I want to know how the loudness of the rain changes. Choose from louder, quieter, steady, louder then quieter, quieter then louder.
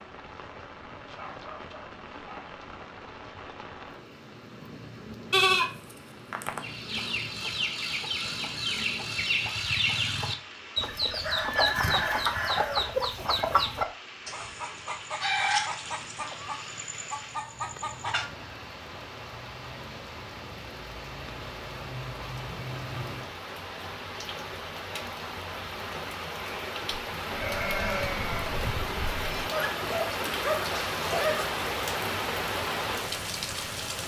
louder.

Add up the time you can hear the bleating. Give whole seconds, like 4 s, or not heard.
4 s.